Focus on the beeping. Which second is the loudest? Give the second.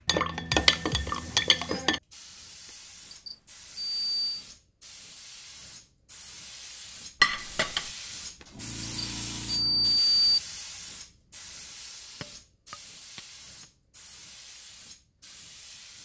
10 s.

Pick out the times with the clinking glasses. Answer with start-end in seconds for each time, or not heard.
0.1-2.0, 7.2-7.9, 12.2-13.7.